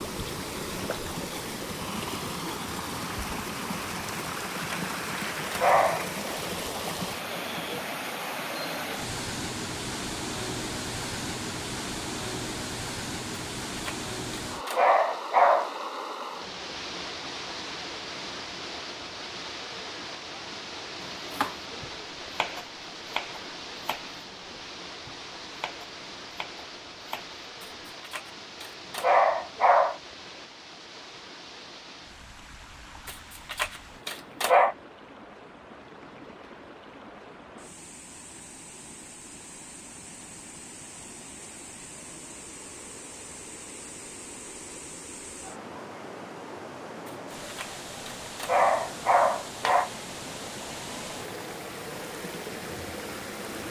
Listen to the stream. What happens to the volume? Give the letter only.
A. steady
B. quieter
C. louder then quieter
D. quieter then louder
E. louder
D.